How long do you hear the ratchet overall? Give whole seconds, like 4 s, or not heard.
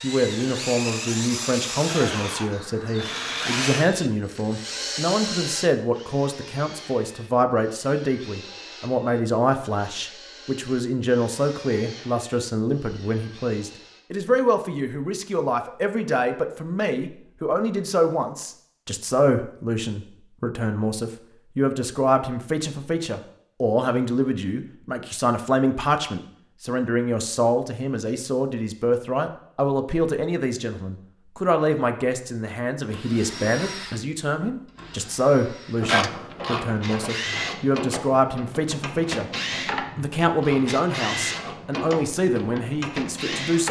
8 s.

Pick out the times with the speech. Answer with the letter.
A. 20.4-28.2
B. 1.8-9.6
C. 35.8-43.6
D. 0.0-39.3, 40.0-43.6
D.